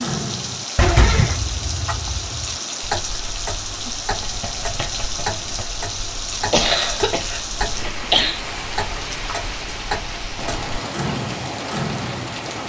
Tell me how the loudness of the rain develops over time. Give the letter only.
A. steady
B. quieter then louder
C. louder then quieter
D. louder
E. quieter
A.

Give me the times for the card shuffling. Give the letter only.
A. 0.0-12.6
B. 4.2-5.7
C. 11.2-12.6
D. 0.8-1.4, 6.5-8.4
B.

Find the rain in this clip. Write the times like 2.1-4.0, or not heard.
0.0-12.6.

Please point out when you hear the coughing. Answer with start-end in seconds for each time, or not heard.
0.8-1.4, 6.5-8.4.